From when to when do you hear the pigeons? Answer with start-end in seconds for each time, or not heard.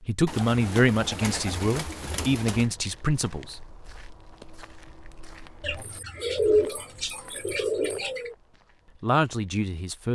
0.2-2.6, 5.6-8.3.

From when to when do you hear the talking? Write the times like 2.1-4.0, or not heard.
0.0-3.6, 9.0-10.0.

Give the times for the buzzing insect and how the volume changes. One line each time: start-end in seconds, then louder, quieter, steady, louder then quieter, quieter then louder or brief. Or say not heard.
not heard.